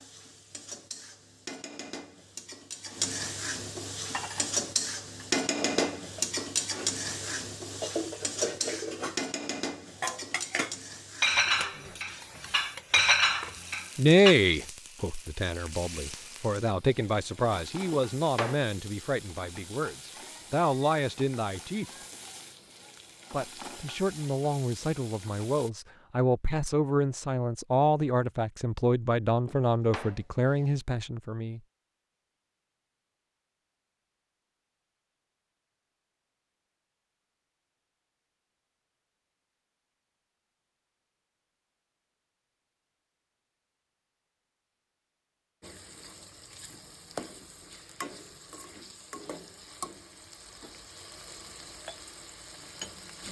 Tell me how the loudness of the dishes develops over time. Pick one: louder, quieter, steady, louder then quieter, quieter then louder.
louder.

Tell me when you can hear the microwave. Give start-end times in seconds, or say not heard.
not heard.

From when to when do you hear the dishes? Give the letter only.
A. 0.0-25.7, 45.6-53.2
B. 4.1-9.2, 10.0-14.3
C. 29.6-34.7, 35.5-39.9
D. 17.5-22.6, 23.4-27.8
B.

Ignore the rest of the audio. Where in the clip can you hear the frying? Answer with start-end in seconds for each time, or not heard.
0.0-25.7, 45.6-53.2.